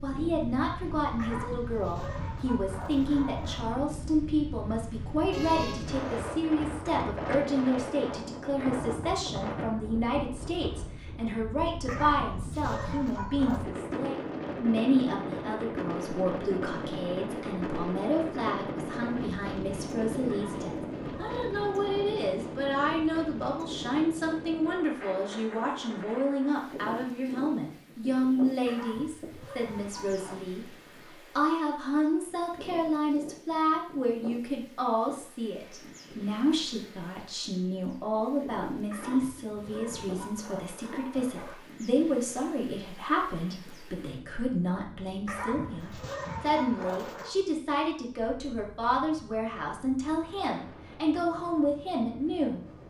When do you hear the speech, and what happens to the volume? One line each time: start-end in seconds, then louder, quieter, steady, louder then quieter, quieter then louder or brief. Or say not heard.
0.0-30.7 steady
31.4-52.6 steady.